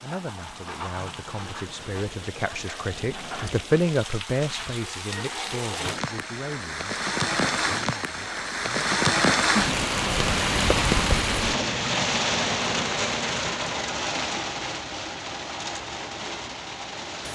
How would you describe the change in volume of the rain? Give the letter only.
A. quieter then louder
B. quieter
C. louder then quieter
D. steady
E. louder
C.